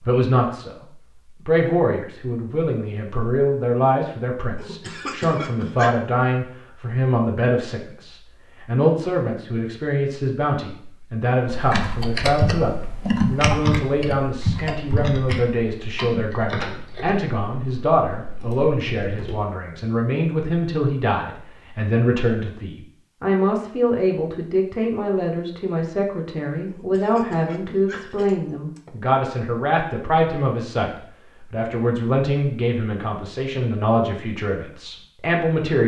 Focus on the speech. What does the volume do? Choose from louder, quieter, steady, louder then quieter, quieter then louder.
steady.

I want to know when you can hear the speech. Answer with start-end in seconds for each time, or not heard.
0.0-35.8.